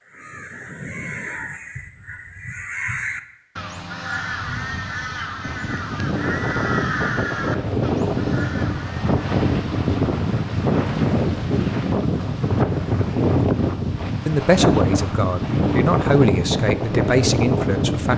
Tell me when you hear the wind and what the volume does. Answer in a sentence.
You can hear the wind from 5.4 to 18.1 s, at a steady volume.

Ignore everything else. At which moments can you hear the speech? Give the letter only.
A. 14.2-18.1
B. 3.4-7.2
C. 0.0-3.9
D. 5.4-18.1
A.